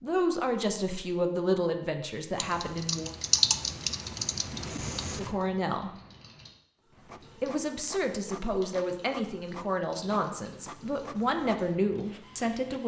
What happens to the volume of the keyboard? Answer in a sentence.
The loudness of the keyboard goes down.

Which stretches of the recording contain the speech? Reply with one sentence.
The speech can be heard from 0.0 to 3.1 s, from 5.1 to 5.9 s and from 7.4 to 12.8 s.